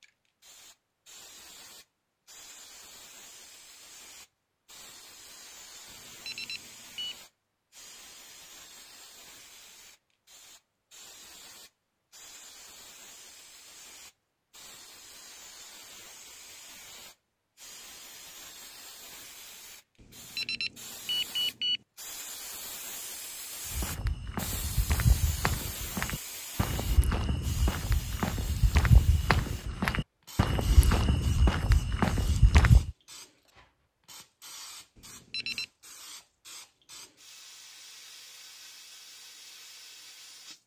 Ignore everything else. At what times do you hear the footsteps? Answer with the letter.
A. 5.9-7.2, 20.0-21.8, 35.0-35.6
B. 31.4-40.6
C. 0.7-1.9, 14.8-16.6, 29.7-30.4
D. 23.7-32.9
D.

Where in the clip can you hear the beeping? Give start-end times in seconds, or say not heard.
5.9-7.2, 20.0-21.8, 35.0-35.6.